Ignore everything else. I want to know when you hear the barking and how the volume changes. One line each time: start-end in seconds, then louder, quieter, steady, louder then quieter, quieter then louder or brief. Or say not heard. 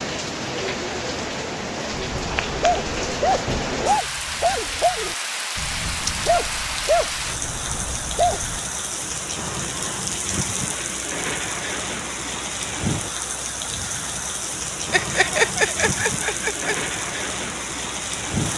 1.9-8.6 quieter.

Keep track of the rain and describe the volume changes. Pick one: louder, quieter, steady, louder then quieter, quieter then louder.
steady.